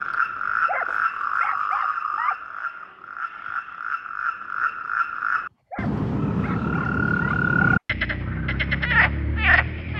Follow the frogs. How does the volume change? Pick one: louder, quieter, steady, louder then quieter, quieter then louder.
quieter then louder.